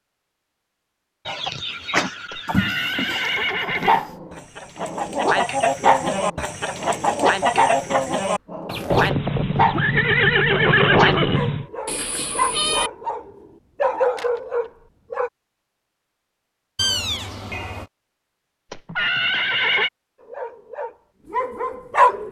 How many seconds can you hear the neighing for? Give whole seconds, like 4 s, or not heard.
6 s.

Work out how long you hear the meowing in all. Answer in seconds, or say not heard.
4 s.